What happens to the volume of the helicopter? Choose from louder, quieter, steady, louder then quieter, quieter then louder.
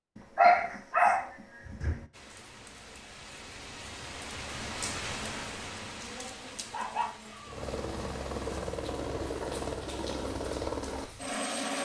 steady.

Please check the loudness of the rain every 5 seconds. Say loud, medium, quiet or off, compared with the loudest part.
loud, loud, medium.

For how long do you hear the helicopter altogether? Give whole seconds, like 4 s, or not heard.
4 s.